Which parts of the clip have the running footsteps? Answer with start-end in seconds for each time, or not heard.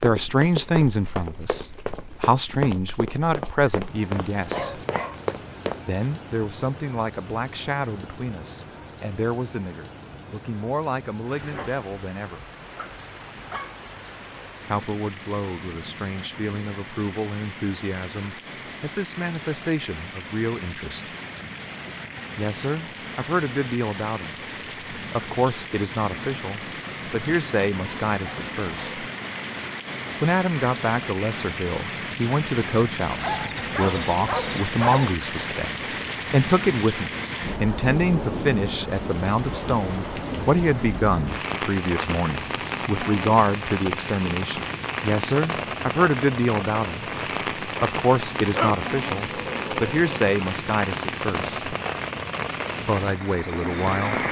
0.0-5.8.